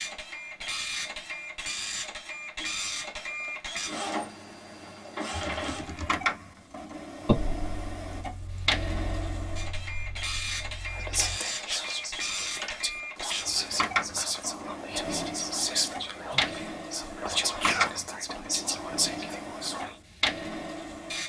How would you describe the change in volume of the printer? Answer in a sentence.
The loudness of the printer stays about the same.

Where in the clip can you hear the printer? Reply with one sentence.
You can hear the printer from 0.0 to 21.2 s.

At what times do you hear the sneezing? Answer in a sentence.
The sneezing can be heard from 2.4 to 2.8 s and from 17.4 to 17.9 s.